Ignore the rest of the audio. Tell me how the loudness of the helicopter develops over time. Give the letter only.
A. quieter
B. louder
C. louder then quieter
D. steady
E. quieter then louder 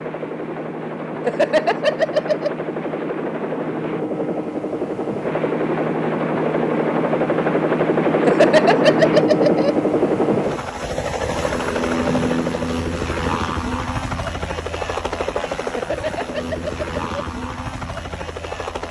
C.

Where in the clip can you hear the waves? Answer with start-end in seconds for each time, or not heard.
not heard.